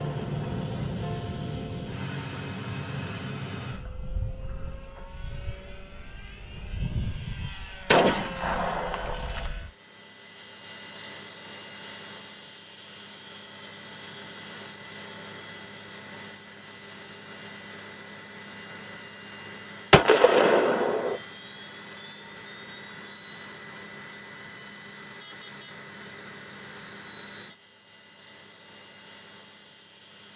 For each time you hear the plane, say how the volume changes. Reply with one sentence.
You can hear the plane from 0.0 to 30.3 s, getting quieter.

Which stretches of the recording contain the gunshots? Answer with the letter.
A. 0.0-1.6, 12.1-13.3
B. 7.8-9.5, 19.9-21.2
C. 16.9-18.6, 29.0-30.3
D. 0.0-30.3
B.